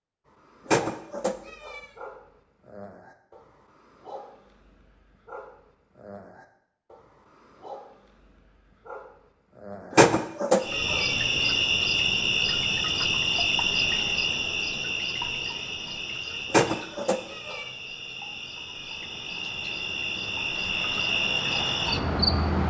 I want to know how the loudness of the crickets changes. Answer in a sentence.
The loudness of the crickets goes down, then up.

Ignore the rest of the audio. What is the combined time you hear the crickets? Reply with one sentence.
You can hear the crickets for 12 seconds altogether.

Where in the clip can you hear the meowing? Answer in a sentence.
The meowing can be heard from 0.7 to 1.9 s, from 9.9 to 11.2 s and from 16.5 to 17.6 s.